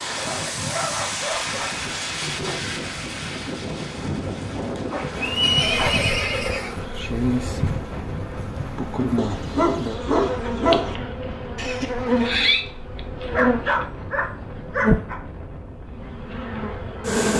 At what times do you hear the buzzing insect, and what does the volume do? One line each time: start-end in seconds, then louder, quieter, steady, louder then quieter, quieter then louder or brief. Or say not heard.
0.1-15.1 louder
15.9-17.3 brief.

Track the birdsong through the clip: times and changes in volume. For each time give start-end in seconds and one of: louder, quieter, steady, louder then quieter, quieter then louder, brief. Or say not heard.
not heard.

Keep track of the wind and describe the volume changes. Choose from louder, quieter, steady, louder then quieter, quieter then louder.
quieter.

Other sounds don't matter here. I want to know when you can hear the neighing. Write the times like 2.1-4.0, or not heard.
5.2-6.8, 11.6-12.7.